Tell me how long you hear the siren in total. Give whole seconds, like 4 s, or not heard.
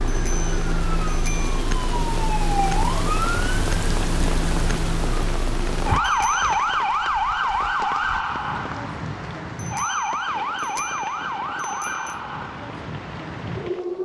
14 s.